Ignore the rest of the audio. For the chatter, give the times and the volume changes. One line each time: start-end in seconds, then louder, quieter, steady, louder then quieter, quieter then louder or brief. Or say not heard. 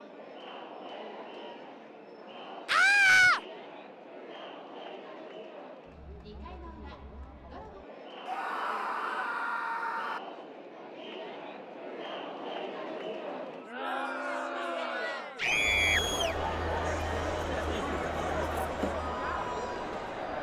0.0-20.3 louder.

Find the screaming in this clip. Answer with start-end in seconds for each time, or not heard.
2.6-3.4, 8.2-10.2, 15.3-16.1.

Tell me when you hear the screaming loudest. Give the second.
3 s.